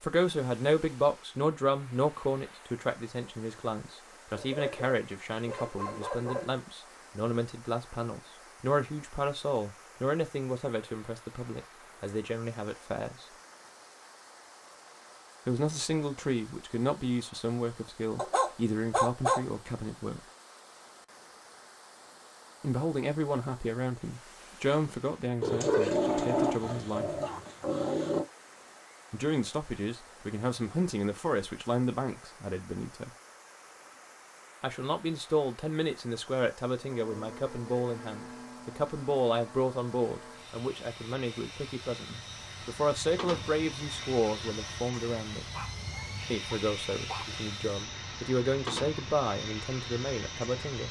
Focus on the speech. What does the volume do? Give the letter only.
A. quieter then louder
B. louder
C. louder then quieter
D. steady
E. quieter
D.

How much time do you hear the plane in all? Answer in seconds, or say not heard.
14 s.